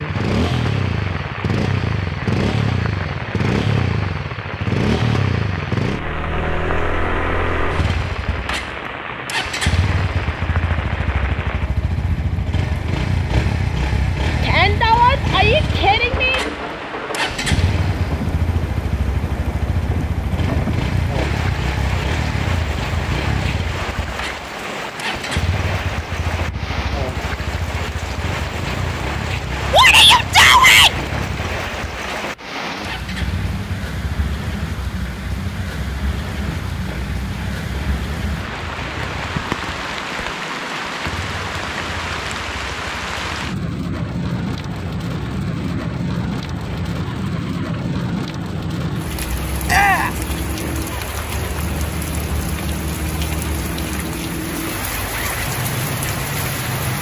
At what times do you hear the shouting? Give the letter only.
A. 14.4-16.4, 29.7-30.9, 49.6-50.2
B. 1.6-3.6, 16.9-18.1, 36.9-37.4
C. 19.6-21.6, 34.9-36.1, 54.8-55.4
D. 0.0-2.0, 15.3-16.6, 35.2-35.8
A.